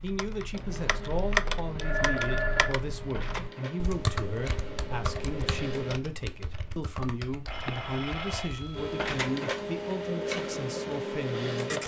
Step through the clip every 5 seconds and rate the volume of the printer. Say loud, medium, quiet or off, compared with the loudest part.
medium, loud, loud.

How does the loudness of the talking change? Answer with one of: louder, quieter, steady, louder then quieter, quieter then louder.
steady.